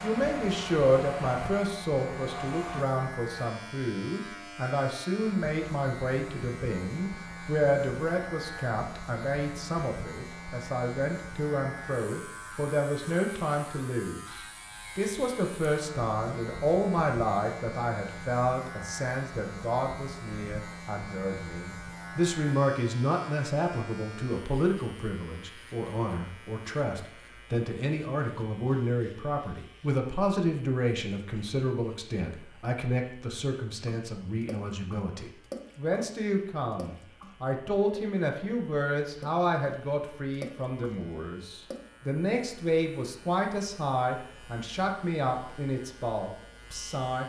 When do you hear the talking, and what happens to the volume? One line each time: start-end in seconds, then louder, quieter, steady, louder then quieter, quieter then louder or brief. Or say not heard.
0.0-47.2 steady.